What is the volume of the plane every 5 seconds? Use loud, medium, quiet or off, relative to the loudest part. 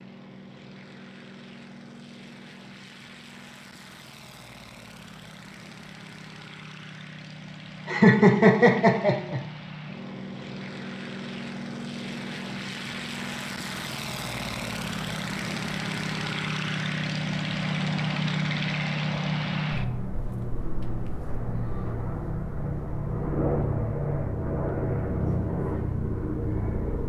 quiet, quiet, medium, loud, loud, loud.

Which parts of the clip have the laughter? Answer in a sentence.
You can hear the laughter from 7.8 to 9.4 s.